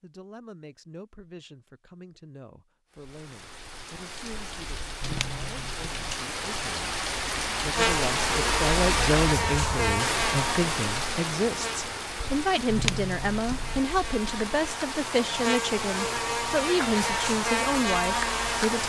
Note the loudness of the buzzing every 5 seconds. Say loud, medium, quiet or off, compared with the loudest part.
off, loud, medium, loud.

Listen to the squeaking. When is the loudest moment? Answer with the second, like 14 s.
13 s.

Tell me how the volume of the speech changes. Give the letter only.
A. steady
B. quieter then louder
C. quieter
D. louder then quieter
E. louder
E.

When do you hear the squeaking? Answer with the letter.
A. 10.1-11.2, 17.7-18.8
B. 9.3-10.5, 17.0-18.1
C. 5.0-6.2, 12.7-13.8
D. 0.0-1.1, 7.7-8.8
C.